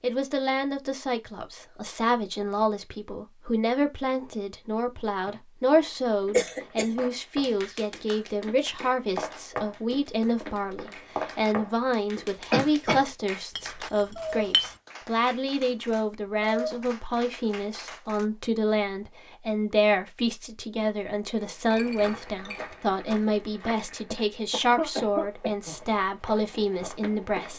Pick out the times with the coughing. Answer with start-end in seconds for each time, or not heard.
6.3-7.0, 12.5-13.0, 24.1-25.8.